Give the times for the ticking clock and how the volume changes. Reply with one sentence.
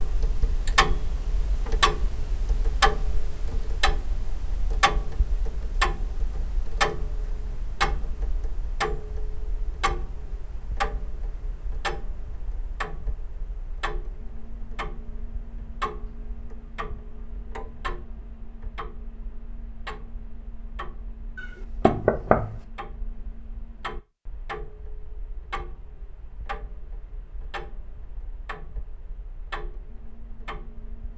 You can hear the ticking clock from 0.0 to 31.1 s, getting quieter.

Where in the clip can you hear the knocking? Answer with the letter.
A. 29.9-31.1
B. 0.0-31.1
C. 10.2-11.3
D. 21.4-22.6
D.